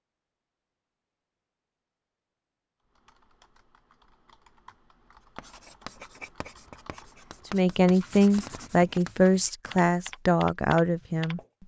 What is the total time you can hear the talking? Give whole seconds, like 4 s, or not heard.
4 s.